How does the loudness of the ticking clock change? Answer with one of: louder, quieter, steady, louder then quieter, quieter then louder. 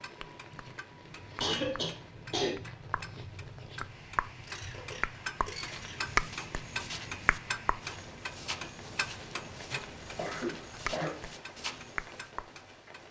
louder then quieter.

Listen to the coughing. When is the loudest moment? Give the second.
2 s.